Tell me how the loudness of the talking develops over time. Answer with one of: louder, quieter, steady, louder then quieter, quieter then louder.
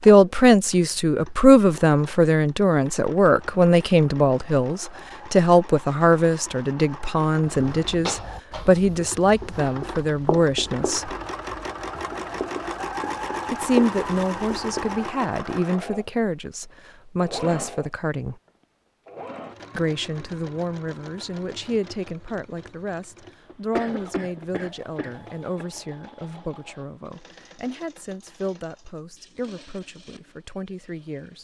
quieter.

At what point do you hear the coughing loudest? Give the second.
24 s.